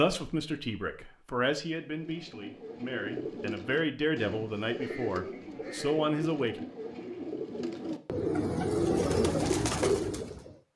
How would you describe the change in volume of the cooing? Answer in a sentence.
The loudness of the cooing goes up.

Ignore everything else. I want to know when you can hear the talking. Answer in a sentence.
The talking can be heard from 0.0 to 6.7 s.